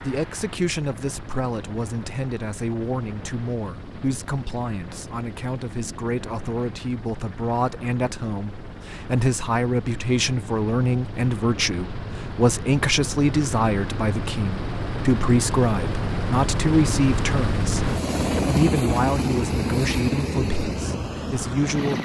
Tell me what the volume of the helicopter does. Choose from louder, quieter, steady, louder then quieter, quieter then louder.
louder.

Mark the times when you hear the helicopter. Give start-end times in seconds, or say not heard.
0.0-22.0.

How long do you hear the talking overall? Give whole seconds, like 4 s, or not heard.
22 s.